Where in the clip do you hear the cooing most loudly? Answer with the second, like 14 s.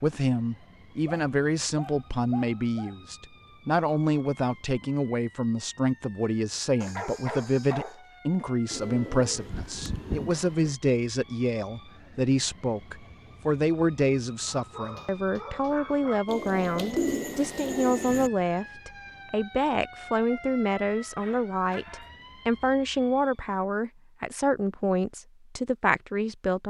17 s.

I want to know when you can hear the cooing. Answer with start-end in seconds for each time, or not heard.
8.7-10.8, 16.2-18.3.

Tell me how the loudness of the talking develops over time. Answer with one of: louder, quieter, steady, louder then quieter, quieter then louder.
steady.